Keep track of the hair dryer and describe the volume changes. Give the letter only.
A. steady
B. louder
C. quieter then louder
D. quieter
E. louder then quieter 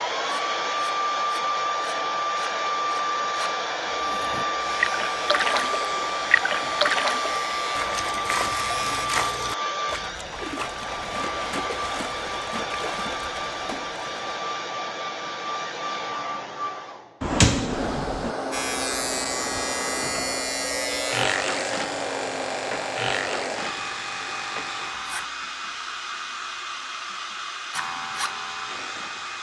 D.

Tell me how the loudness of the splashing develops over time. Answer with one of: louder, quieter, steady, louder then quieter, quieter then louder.
quieter.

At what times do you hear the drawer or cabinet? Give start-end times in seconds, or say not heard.
17.2-18.4.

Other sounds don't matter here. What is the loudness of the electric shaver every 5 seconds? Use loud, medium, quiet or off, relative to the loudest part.
medium, medium, off, loud, loud, medium.